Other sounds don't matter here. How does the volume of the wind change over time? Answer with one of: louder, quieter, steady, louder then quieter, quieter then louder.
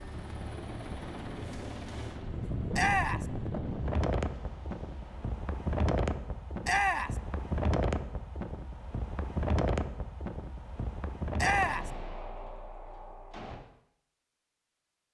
steady.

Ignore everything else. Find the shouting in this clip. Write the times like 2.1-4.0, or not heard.
2.7-3.2, 6.6-7.2, 11.3-11.9.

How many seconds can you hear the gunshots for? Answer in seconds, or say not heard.
2 s.